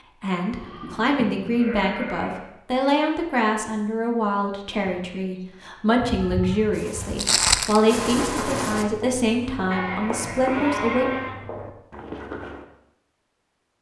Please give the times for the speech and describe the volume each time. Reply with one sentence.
You can hear the speech from 0.2 to 11.1 s, at a steady volume.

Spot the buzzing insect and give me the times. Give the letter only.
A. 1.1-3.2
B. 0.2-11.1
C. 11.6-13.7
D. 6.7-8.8
D.